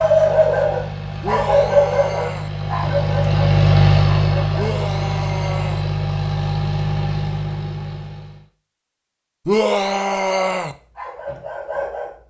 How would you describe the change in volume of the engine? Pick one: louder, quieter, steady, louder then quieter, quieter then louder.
louder then quieter.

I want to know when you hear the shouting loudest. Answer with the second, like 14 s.
10 s.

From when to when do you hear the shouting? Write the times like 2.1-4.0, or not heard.
1.2-2.5, 4.5-5.8, 9.4-10.8.